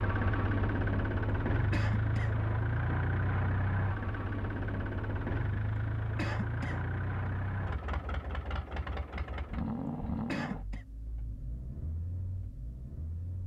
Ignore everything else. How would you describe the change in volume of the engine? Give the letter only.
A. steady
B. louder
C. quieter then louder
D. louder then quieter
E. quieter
E.